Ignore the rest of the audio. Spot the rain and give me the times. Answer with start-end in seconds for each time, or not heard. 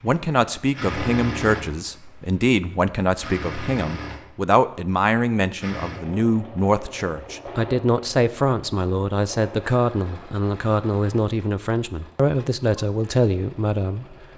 not heard.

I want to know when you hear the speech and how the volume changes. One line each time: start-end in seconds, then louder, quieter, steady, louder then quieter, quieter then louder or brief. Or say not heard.
0.0-14.2 steady.